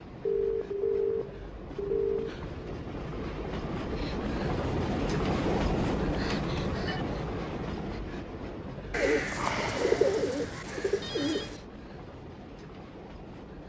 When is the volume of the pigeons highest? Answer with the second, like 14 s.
10 s.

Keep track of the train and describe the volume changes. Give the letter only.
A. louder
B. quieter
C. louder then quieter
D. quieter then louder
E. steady
C.